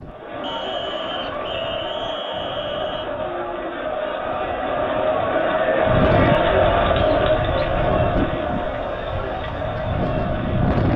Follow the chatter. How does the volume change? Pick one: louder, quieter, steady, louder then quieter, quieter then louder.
louder then quieter.